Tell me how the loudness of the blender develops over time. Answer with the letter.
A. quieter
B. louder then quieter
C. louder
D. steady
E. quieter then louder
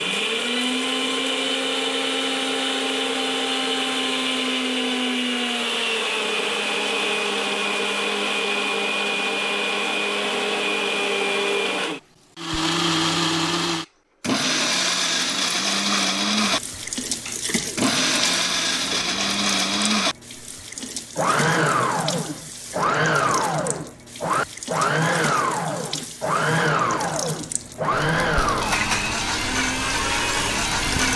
D.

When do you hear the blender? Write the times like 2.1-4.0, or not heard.
0.0-31.1.